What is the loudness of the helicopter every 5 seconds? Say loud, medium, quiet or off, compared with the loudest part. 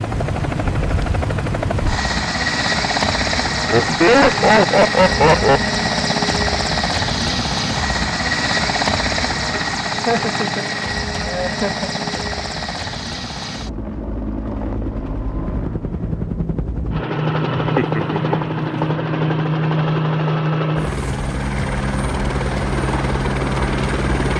loud, loud, medium, loud, loud.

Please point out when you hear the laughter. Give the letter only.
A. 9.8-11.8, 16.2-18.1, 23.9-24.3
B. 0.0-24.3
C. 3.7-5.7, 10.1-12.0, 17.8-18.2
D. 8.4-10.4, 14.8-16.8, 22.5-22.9
C.